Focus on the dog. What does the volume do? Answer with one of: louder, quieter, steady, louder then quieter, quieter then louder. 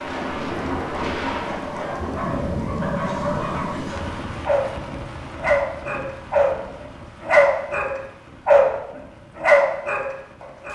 louder.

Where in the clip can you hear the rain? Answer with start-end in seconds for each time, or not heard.
0.0-10.7.